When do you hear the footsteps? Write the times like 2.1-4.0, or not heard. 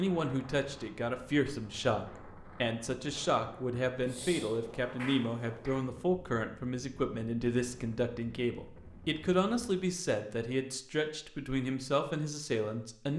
not heard.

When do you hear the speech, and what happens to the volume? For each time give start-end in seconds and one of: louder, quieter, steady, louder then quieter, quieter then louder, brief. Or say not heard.
0.0-13.1 steady.